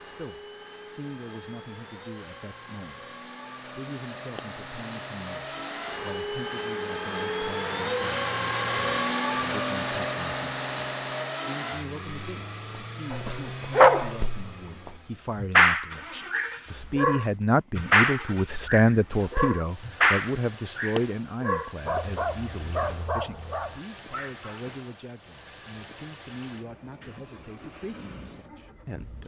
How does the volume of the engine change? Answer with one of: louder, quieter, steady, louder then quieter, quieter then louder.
louder then quieter.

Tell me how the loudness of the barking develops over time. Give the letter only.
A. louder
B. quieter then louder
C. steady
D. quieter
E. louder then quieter
D.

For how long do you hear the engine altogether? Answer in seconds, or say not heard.
29 s.